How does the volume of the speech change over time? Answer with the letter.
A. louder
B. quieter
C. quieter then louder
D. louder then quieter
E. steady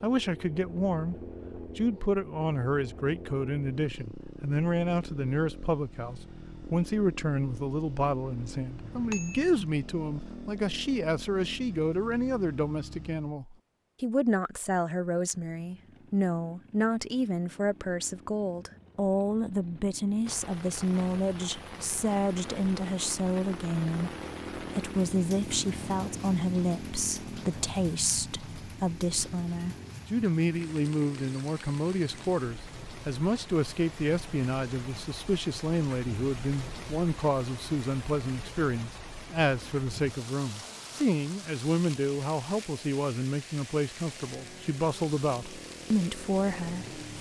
E.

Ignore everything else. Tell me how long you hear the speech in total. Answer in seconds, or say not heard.
47 s.